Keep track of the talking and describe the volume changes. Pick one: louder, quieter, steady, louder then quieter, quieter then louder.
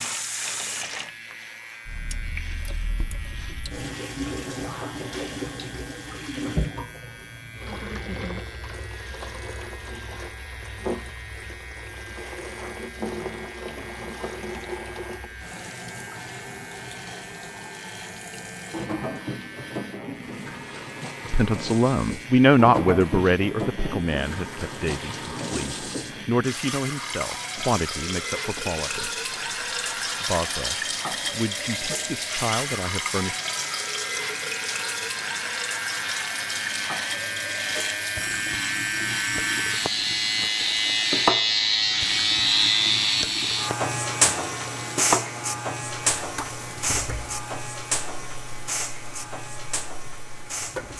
quieter.